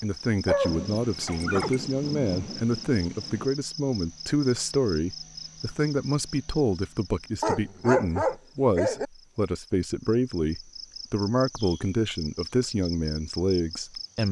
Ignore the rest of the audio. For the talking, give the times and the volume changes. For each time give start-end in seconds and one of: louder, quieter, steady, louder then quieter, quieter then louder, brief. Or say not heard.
0.0-14.2 steady.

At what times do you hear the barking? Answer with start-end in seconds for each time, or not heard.
0.5-1.8, 7.4-9.1.